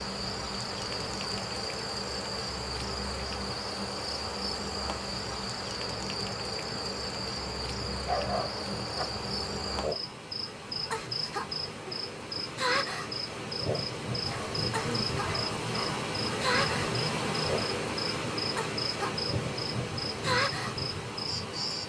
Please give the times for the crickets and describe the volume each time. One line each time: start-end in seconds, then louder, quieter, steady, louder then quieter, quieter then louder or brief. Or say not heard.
0.0-21.8 steady.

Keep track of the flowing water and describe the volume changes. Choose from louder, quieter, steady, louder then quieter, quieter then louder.
louder.